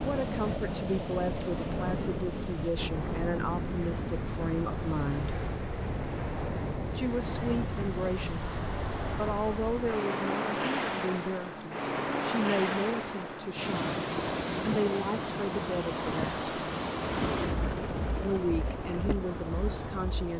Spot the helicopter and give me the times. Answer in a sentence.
You can hear the helicopter from 16.9 to 20.3 s.